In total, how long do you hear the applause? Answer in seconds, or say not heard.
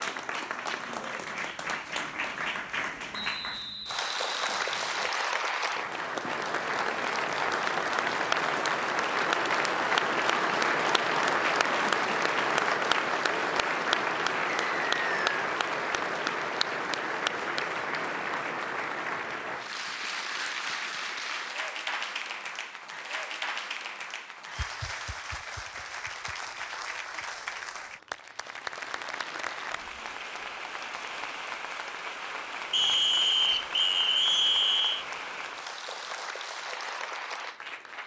38 s.